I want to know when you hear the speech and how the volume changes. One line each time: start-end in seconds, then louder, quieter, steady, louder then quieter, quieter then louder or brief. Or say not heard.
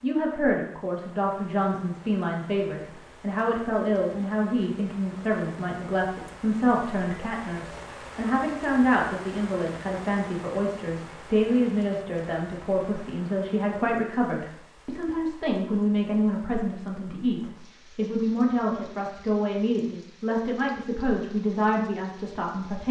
0.0-22.8 steady.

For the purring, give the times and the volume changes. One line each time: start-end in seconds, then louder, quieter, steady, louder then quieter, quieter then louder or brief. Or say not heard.
not heard.